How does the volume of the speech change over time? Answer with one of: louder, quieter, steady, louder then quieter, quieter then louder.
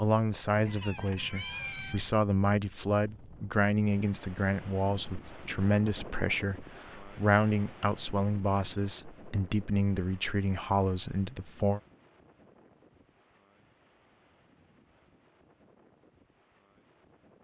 steady.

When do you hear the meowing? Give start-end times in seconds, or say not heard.
0.5-2.0.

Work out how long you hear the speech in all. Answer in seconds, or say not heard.
12 s.